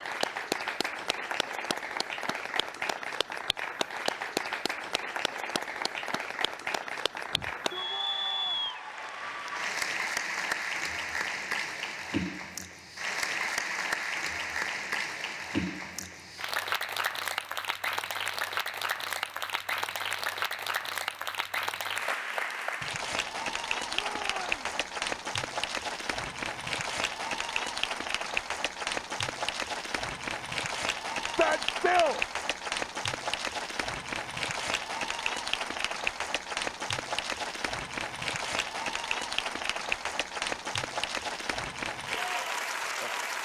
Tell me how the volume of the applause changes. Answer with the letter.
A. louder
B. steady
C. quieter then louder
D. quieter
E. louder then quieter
B.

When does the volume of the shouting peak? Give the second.
32 s.